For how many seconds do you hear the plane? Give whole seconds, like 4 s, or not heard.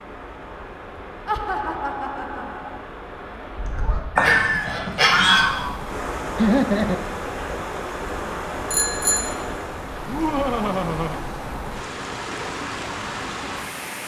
not heard.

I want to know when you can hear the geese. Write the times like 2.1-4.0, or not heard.
3.5-6.0.